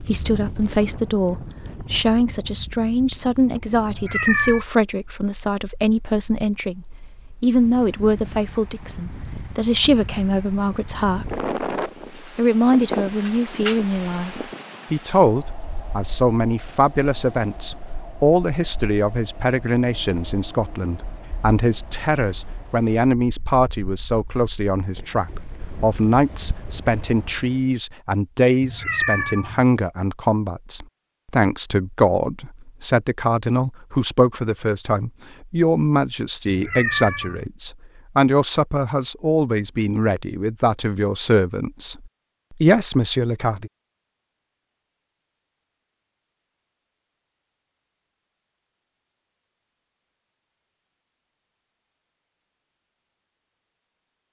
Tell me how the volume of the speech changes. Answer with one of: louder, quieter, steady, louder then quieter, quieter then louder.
steady.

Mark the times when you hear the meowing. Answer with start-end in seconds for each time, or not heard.
3.9-4.7, 28.6-29.6, 36.5-37.5.